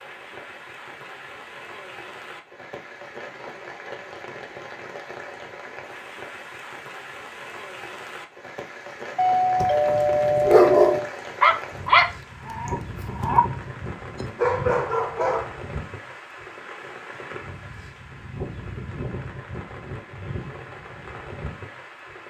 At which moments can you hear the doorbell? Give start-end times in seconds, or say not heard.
9.2-11.2.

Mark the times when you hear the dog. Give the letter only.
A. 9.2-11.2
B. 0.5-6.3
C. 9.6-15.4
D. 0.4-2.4
C.